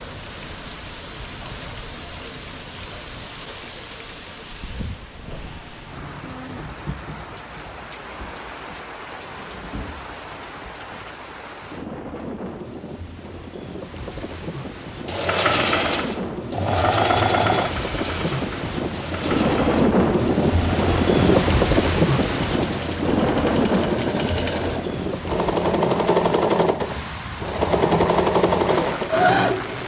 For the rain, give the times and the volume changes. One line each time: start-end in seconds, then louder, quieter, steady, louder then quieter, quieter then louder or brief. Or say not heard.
0.0-29.8 louder then quieter.